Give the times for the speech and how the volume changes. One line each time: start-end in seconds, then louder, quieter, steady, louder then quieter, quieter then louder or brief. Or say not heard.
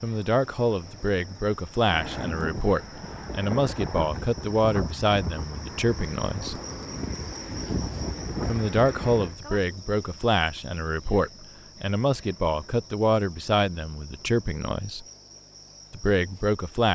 0.0-6.6 steady
8.4-15.1 steady
15.9-16.9 brief.